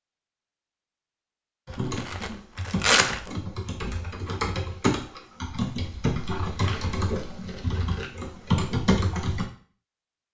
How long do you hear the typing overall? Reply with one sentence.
The typing can be heard for 8 seconds in total.